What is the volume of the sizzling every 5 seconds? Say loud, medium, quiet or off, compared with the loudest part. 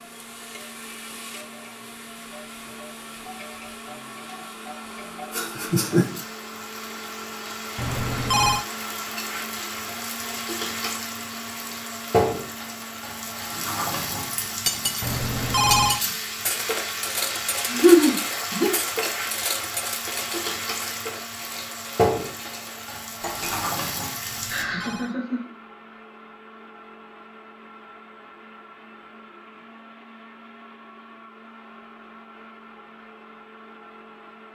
quiet, medium, loud, loud, loud, off, off.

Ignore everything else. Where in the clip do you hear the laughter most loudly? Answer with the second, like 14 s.
18 s.